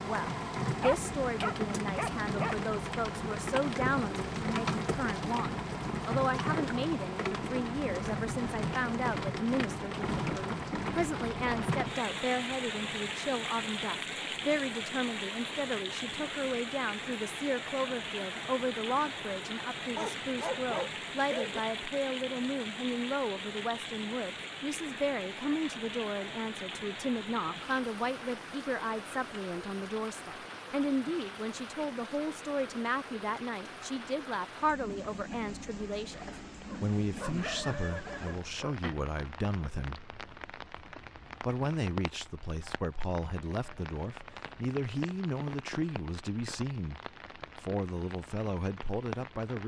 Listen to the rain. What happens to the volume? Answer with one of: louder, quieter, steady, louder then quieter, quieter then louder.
quieter.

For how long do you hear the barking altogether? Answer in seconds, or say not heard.
6 s.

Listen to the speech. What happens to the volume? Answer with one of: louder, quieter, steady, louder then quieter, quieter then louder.
steady.